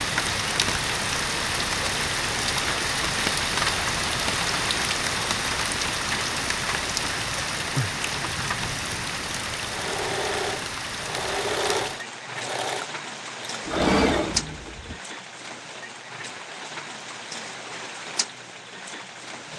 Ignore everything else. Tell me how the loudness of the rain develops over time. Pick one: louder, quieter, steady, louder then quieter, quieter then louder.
quieter.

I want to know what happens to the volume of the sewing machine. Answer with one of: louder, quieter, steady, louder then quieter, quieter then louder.
quieter then louder.